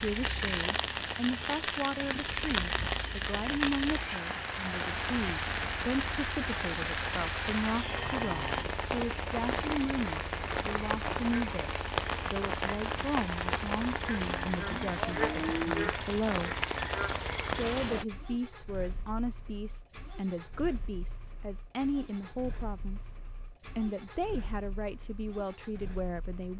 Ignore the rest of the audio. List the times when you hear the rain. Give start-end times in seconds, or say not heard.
0.0-18.1.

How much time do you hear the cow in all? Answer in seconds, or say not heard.
3 s.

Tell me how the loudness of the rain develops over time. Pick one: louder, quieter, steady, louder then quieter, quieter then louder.
steady.